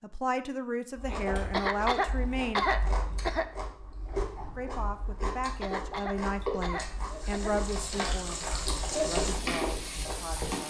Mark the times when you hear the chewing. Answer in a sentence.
The chewing can be heard from 0.9 to 10.6 s.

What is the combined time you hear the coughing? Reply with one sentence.
You can hear the coughing for 4 seconds altogether.